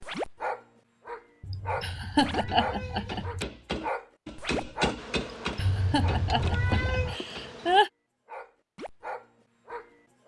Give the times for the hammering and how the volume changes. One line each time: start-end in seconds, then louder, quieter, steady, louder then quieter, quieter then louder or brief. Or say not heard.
2.2-7.8 louder then quieter.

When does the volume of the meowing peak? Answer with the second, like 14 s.
7 s.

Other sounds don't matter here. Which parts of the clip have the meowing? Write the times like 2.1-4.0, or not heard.
1.4-3.5, 5.5-7.2.